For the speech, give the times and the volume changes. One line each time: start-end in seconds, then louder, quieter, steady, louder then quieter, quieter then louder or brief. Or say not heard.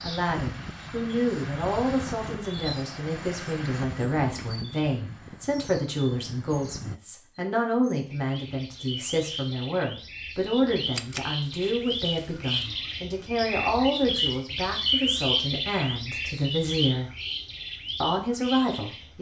0.0-17.1 steady
18.0-19.1 brief.